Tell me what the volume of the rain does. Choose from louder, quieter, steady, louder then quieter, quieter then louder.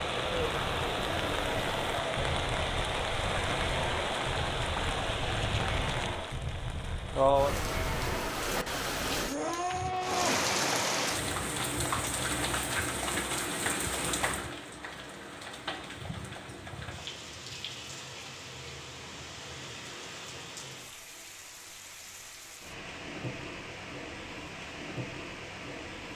quieter.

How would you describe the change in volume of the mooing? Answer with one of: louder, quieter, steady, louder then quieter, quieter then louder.
louder.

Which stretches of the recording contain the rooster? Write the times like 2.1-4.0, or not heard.
not heard.